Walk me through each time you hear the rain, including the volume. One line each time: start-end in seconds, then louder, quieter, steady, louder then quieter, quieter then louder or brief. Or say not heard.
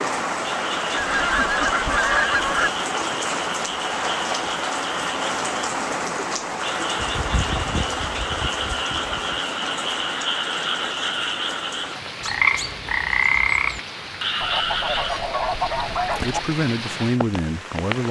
0.0-18.0 quieter.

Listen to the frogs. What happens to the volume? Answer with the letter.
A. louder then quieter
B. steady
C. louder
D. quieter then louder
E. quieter
C.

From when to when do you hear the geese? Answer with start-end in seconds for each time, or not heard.
0.9-2.7, 7.0-9.4, 14.4-16.4.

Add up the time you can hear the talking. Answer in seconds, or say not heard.
2 s.